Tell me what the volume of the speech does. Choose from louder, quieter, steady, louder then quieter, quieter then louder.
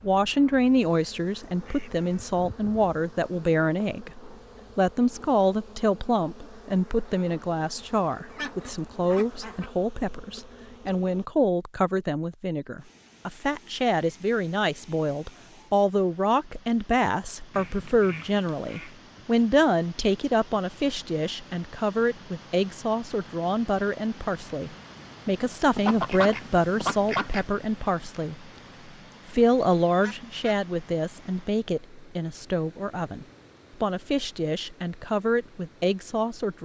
steady.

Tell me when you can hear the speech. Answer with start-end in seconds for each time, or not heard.
0.0-28.5, 29.3-36.5.